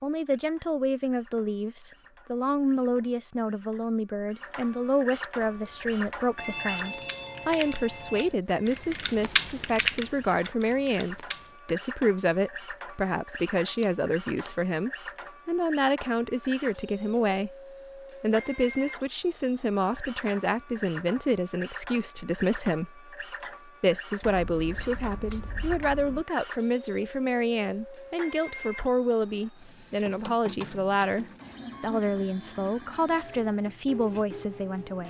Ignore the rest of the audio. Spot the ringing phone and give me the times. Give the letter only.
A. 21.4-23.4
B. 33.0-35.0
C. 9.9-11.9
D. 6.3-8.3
D.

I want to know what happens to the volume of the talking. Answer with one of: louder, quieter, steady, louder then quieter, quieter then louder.
steady.